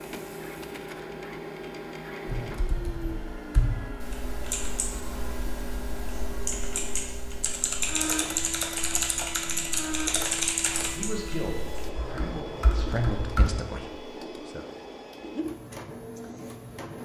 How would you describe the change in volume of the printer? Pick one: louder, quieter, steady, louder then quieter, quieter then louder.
steady.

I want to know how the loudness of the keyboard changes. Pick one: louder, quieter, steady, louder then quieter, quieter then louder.
louder then quieter.